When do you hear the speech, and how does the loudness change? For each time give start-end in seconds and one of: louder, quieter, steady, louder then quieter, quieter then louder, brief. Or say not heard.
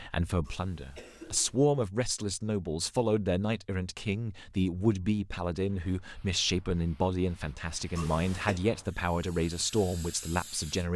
0.0-10.9 steady.